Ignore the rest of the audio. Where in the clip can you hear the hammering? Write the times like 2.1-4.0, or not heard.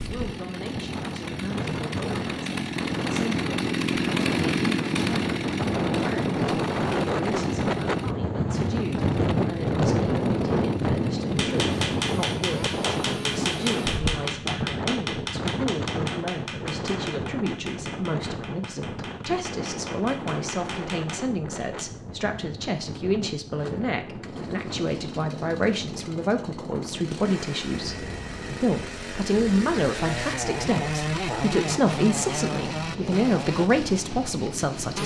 11.3-21.9.